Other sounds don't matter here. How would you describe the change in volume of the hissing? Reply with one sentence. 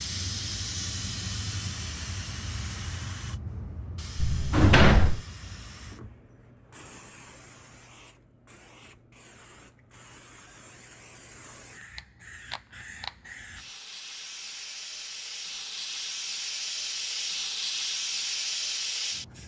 The loudness of the hissing goes down, then up.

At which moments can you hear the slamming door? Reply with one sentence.
The slamming door can be heard from 4.2 to 5.2 s.